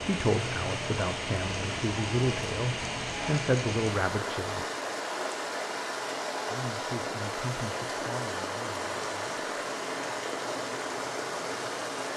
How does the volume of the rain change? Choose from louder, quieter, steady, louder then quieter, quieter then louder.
steady.